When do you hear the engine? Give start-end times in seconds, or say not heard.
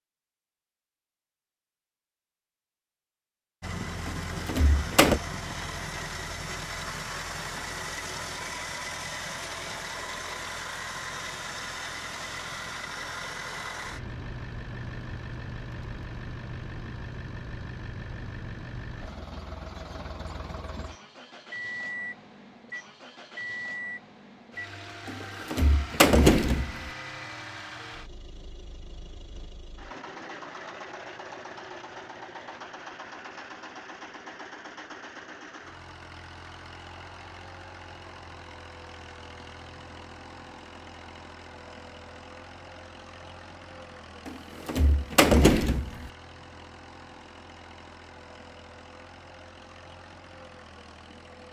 3.6-51.4.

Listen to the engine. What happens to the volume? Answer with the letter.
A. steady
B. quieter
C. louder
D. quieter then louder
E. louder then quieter
B.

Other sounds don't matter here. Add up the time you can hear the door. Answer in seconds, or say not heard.
5 s.